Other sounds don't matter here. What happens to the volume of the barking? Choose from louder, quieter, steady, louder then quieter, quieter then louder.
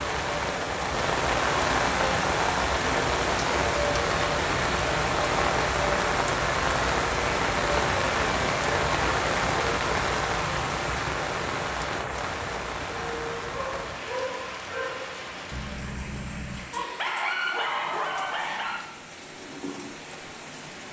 louder.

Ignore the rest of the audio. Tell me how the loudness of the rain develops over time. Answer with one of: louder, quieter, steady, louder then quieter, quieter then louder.
quieter.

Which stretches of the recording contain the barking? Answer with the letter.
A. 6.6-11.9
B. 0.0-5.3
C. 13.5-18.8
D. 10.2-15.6
C.